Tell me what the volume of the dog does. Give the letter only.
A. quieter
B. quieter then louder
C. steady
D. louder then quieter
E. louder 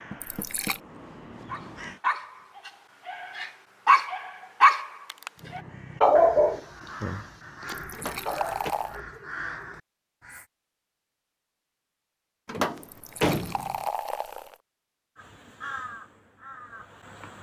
D.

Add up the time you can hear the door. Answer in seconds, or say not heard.
3 s.